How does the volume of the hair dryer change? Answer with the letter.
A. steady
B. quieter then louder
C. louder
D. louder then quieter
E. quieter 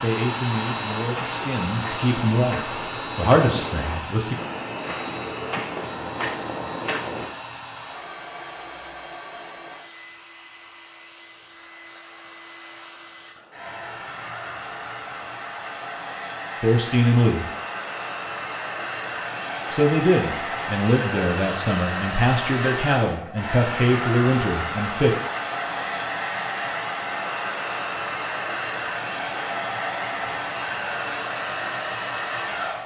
B.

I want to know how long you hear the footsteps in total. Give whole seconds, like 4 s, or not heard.
7 s.